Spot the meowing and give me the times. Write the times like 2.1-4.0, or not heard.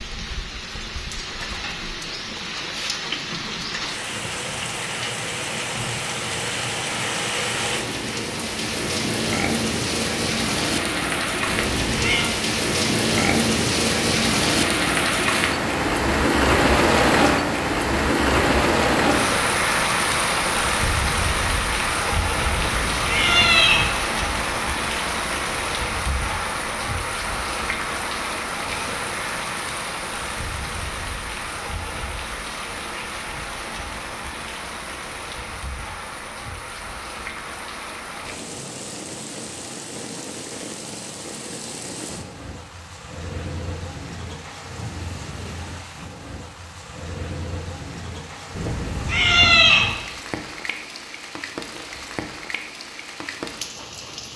11.4-12.3, 22.5-23.9, 48.5-49.9.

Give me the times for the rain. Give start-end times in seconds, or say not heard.
0.0-54.3.